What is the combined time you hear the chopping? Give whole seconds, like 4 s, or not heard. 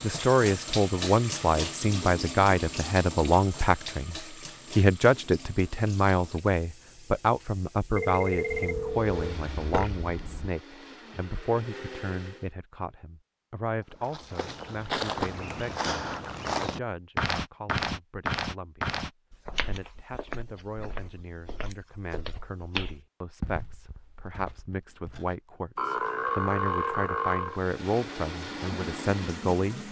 not heard.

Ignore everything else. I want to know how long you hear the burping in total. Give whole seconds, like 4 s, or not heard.
4 s.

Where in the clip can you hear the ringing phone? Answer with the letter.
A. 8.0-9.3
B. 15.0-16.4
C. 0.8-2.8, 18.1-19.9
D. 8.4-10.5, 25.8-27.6
A.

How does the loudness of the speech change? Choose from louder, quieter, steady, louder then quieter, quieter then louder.
quieter then louder.